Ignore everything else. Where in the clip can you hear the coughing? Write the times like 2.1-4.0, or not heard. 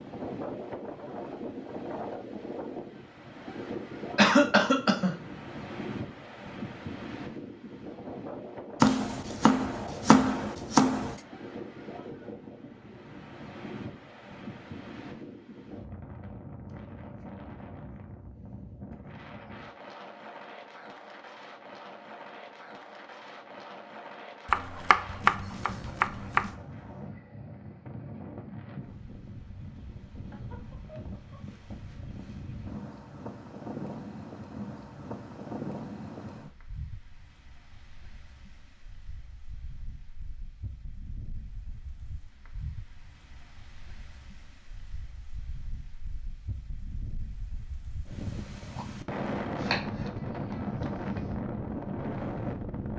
4.2-5.2.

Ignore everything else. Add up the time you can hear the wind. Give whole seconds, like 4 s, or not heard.
53 s.